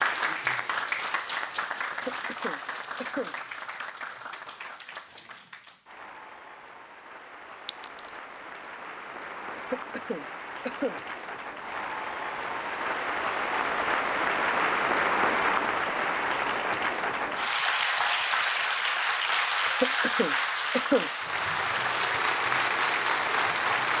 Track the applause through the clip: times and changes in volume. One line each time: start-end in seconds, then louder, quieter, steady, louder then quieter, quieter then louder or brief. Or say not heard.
0.0-23.9 quieter then louder.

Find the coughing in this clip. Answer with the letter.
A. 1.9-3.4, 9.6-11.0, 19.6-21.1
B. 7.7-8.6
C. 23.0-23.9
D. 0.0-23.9
A.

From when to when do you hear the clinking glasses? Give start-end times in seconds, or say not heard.
7.7-8.6.